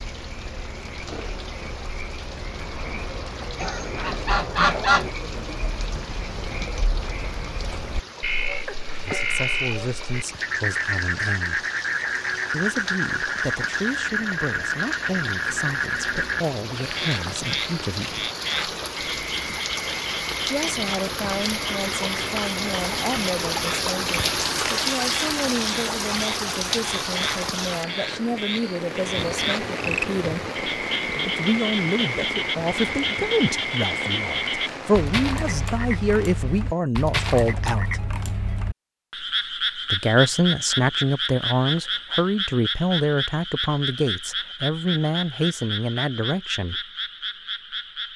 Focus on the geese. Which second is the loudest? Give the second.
5 s.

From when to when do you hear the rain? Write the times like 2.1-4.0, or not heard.
0.0-36.8.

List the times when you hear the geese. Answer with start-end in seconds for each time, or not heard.
3.5-5.1.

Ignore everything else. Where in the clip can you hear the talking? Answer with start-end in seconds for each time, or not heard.
9.1-11.7, 12.5-18.2, 20.4-30.4, 31.1-38.0, 39.9-46.8.